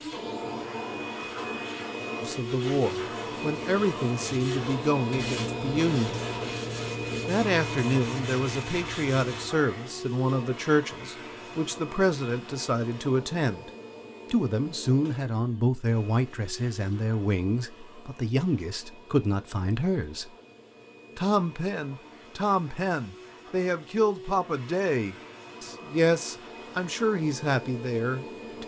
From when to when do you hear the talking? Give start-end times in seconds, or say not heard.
2.2-6.2, 7.2-13.7, 14.3-20.3, 21.1-28.6.